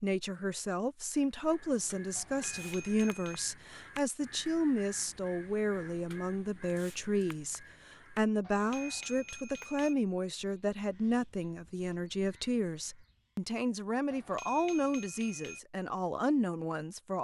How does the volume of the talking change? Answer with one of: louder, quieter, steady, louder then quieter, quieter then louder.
steady.